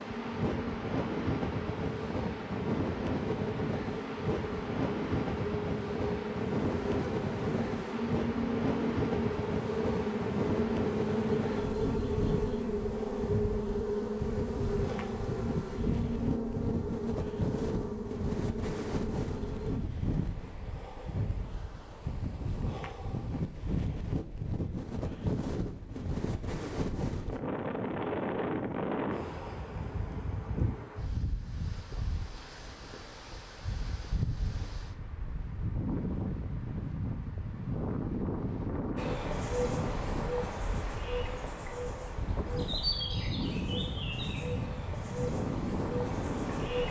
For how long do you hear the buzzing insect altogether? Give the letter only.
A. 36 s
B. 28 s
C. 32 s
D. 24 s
B.